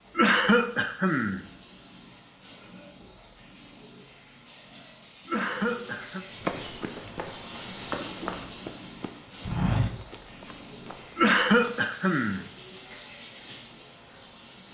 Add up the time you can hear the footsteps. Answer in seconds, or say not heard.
5 s.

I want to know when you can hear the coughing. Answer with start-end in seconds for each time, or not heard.
0.1-1.4, 5.2-6.2, 11.2-12.4.